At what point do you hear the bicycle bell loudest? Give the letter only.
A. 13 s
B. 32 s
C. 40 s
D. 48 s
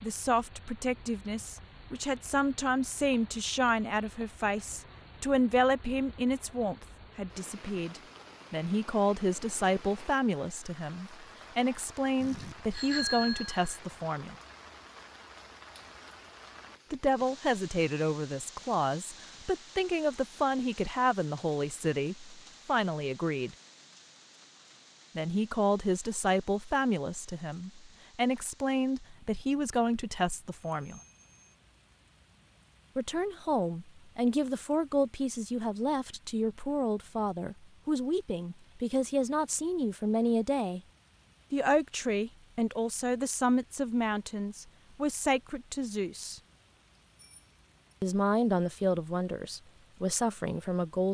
A.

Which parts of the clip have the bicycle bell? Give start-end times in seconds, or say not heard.
12.2-13.8, 30.6-31.6, 47.1-48.0.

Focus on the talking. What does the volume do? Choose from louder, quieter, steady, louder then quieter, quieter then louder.
steady.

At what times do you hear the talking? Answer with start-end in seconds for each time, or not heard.
0.0-14.3, 16.9-23.6, 25.1-31.0, 33.0-40.8, 41.5-46.4, 48.0-51.0.